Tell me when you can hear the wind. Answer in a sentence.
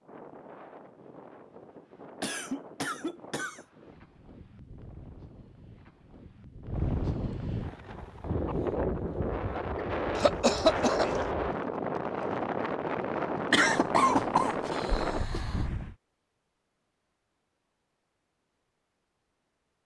The wind can be heard from 0.0 to 15.9 s.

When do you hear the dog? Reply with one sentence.
The dog can't be heard in this clip.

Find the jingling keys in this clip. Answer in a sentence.
You can't hear the jingling keys here.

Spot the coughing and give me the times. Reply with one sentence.
The coughing can be heard from 2.2 to 3.6 s, from 10.2 to 11.2 s and from 13.5 to 15.7 s.